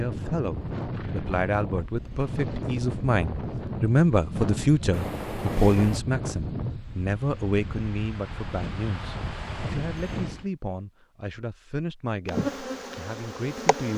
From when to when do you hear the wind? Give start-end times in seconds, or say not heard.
0.0-10.5.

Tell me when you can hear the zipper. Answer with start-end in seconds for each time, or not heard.
4.9-6.0.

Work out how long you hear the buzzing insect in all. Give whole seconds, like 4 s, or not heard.
2 s.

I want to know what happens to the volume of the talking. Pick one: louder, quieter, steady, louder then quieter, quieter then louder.
louder then quieter.